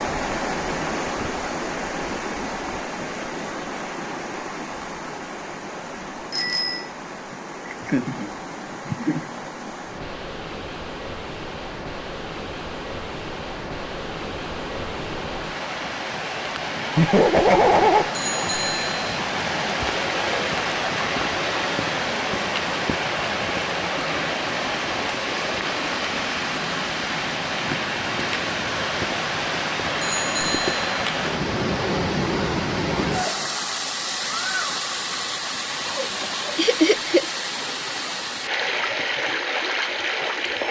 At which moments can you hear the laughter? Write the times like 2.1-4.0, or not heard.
7.7-9.2, 16.9-18.1, 36.5-37.2.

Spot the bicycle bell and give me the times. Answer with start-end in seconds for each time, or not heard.
6.3-6.9, 18.1-19.1, 30.0-30.8.